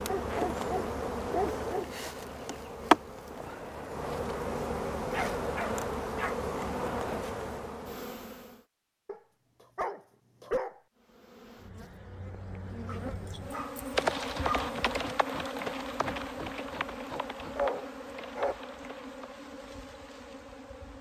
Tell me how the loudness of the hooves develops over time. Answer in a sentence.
The volume of the hooves goes down.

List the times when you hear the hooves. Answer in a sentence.
The hooves can be heard from 13.9 to 19.2 s.